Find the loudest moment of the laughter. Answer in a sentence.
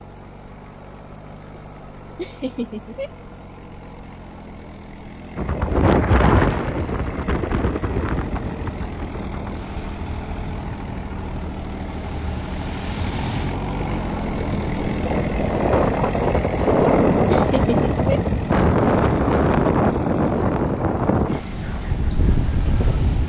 The loudest moment of the laughter is at 18 seconds.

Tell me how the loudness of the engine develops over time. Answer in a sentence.
The volume of the engine goes up, then down.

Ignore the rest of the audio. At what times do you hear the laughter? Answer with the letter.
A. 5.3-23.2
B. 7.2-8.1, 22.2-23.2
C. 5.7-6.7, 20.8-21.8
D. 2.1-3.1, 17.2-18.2
D.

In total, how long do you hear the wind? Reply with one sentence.
You can hear the wind for 18 seconds altogether.